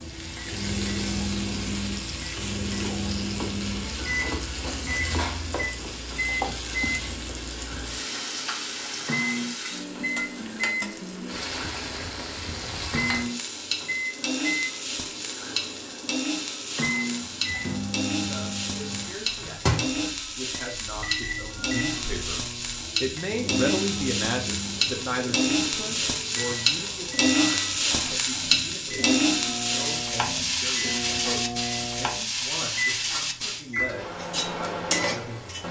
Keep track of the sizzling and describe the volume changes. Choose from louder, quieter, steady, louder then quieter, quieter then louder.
louder.